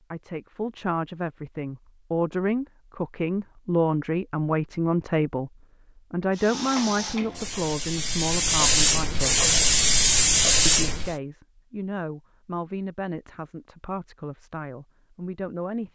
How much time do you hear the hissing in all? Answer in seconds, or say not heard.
5 s.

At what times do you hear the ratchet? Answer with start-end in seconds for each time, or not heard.
not heard.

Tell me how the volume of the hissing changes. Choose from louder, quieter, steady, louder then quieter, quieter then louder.
louder.